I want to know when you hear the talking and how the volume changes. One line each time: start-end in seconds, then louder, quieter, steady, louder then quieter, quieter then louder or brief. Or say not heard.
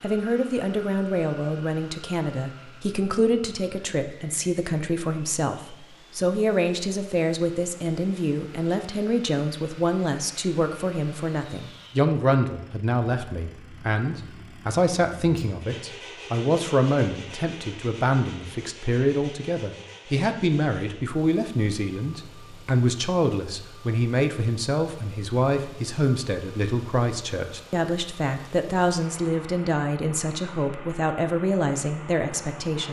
0.0-32.8 steady.